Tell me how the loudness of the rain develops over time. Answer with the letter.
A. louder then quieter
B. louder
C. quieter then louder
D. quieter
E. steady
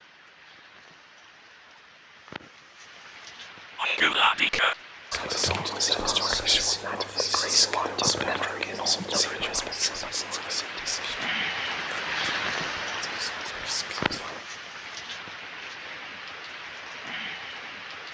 A.